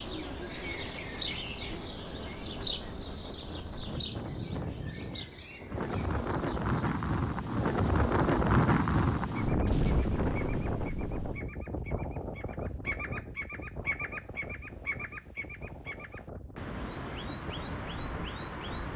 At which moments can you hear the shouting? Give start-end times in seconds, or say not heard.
not heard.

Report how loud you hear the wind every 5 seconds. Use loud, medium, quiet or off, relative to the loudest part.
quiet, loud, medium, quiet.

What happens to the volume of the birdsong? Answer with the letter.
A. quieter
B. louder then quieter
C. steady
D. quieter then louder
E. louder
D.